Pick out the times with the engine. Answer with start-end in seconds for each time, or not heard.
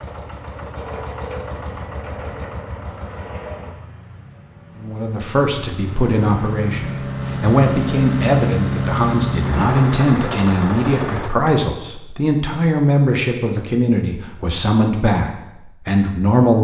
0.0-11.3.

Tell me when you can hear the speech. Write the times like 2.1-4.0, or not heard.
4.8-16.6.